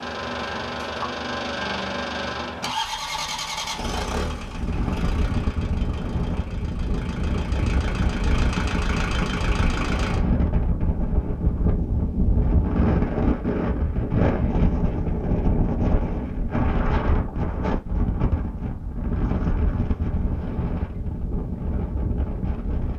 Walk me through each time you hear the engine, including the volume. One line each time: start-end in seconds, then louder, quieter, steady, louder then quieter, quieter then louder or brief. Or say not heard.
0.0-10.2 quieter then louder.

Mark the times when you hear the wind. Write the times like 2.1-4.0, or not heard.
4.3-22.9.